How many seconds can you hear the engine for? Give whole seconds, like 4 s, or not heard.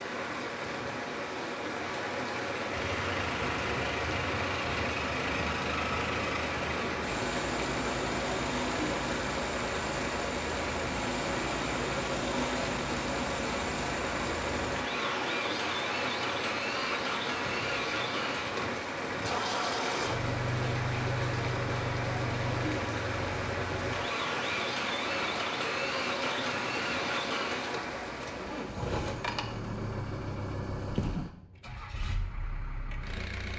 31 s.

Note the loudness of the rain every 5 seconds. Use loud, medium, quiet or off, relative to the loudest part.
loud, loud, loud, loud, loud, loud, off.